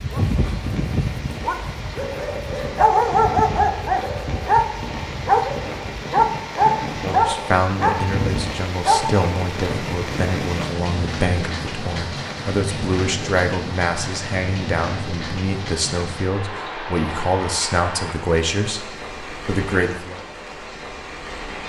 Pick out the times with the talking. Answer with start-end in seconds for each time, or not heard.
6.9-20.2.